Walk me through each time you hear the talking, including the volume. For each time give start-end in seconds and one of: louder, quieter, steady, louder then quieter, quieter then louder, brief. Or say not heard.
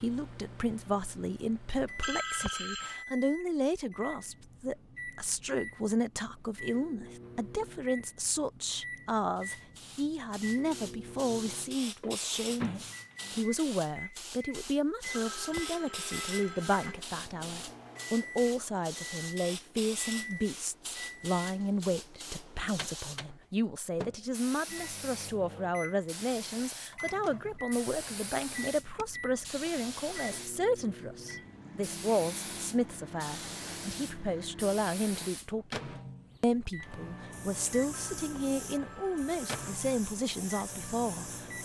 0.0-41.6 steady.